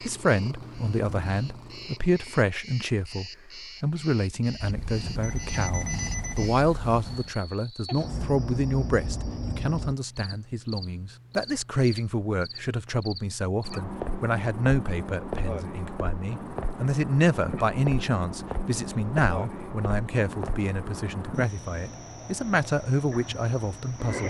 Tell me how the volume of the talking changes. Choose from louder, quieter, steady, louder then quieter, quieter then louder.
steady.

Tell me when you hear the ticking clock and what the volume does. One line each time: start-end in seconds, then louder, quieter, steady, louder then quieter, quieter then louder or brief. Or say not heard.
not heard.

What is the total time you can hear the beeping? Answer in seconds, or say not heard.
3 s.